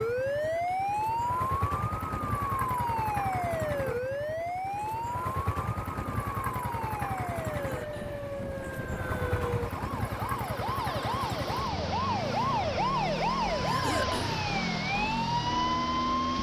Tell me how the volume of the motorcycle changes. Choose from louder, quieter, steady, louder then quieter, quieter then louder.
steady.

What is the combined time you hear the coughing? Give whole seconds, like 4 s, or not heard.
2 s.